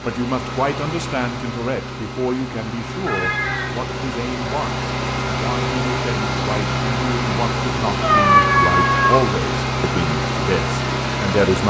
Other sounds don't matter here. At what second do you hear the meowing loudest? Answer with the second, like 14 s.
8 s.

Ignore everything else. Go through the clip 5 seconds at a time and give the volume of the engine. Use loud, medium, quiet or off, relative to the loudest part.
medium, loud, loud.